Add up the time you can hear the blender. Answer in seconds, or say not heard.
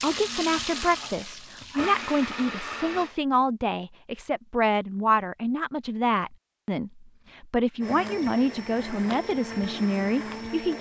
6 s.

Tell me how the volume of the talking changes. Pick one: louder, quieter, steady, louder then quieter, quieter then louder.
steady.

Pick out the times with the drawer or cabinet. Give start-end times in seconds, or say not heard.
not heard.